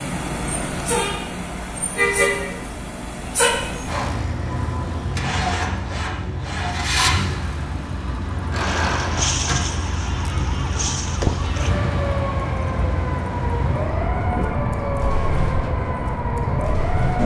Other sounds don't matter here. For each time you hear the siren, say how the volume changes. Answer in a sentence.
The siren can be heard from 8.6 to 17.2 s, at a steady volume.